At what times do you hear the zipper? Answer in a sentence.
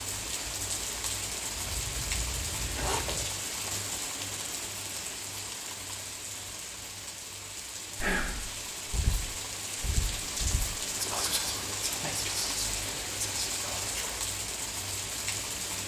The zipper can be heard from 1.6 to 3.3 s.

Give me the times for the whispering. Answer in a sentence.
You can hear the whispering from 8.0 to 14.2 s.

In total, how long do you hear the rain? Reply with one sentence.
The rain can be heard for 16 seconds in total.